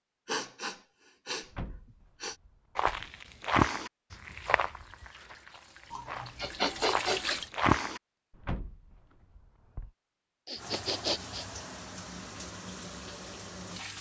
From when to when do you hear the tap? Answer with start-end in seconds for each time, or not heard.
4.2-7.5, 10.6-13.9.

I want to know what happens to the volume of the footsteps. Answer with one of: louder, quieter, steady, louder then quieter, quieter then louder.
quieter then louder.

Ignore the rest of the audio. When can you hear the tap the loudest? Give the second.
7 s.